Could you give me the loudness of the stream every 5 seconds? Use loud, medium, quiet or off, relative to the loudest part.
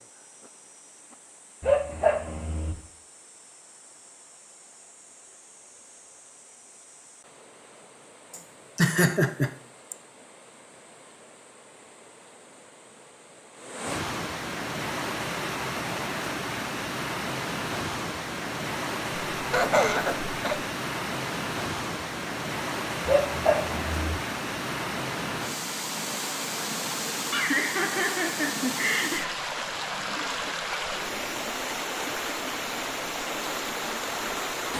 quiet, quiet, medium, loud, loud, loud, loud.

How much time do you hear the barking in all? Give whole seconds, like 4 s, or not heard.
2 s.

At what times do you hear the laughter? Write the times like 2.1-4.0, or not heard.
8.3-9.9, 19.4-20.6, 27.3-29.3.